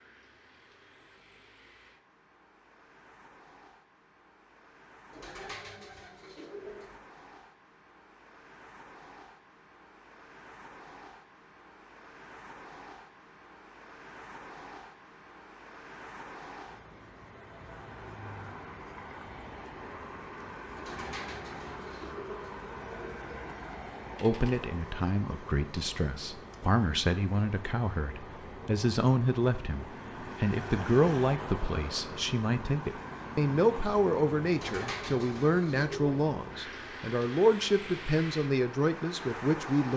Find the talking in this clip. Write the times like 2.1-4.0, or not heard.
24.2-39.9.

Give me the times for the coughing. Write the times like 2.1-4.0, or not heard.
not heard.